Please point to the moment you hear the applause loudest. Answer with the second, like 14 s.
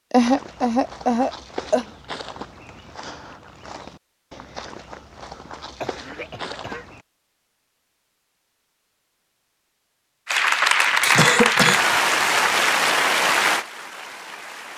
11 s.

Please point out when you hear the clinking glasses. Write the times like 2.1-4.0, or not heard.
not heard.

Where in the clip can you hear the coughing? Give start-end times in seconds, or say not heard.
0.1-1.9, 5.8-6.8, 10.8-11.8.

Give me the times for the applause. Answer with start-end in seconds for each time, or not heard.
10.2-14.7.